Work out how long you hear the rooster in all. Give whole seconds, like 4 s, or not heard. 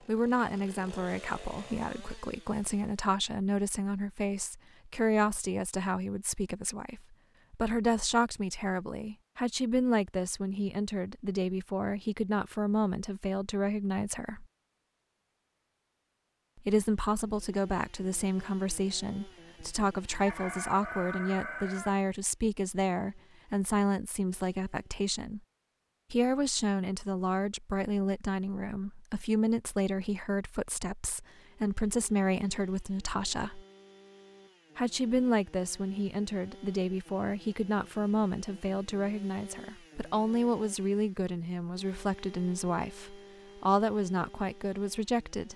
2 s.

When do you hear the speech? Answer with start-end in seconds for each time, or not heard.
0.1-14.4, 16.6-25.4, 26.1-33.6, 34.8-45.5.